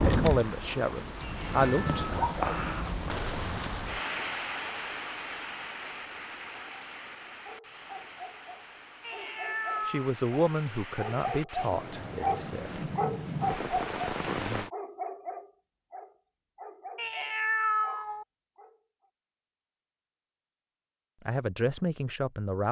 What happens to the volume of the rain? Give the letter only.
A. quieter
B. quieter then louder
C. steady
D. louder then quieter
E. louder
B.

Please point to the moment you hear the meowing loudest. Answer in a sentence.
The loudest moment of the meowing is at 18 seconds.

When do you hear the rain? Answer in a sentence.
The rain can be heard from 0.0 to 14.7 s.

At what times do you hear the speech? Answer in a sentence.
You can hear the speech from 0.1 to 2.3 s, from 9.8 to 12.8 s and from 21.2 to 22.6 s.